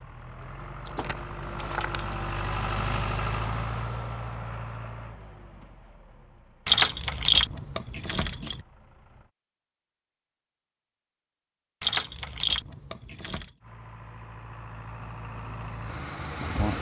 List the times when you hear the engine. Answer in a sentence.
You can hear the engine from 0.0 to 9.3 s and from 13.6 to 16.7 s.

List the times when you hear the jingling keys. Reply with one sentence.
The jingling keys can be heard from 0.8 to 2.1 s, from 6.7 to 8.6 s and from 11.8 to 13.5 s.